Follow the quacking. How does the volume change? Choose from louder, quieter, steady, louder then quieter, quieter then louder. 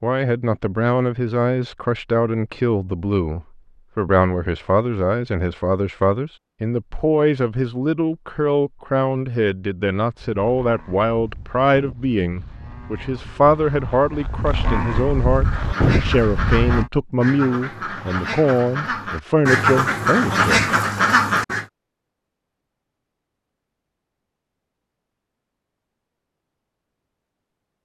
louder.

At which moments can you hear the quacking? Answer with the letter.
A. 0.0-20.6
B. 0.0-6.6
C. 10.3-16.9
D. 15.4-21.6
D.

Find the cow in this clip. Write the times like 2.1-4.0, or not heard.
10.3-16.9.